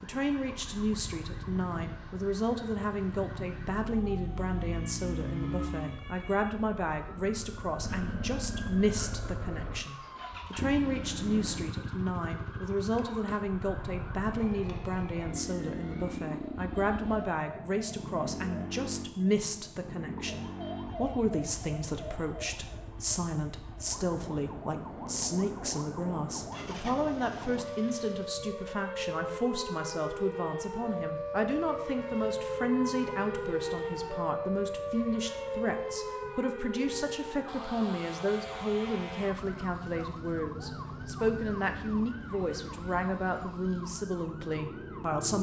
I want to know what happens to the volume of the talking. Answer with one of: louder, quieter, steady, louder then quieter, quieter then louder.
steady.